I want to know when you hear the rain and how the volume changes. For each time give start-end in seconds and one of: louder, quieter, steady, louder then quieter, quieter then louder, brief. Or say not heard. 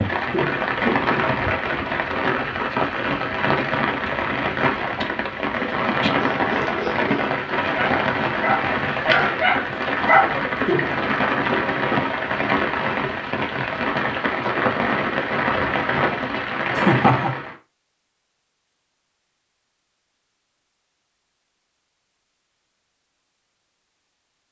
0.0-17.6 steady.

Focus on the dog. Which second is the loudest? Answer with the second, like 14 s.
10 s.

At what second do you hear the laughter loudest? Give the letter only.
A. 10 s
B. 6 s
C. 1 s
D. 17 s
D.